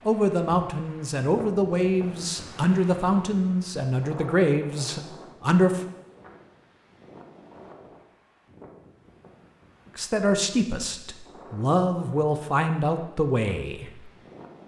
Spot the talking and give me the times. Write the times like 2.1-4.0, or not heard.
0.1-5.8, 9.9-14.1.